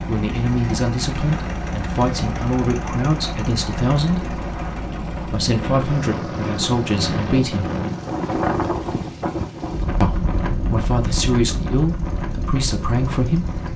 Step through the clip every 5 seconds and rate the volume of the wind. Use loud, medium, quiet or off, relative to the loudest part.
medium, loud, loud.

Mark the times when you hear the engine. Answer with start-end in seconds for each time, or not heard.
0.0-13.7.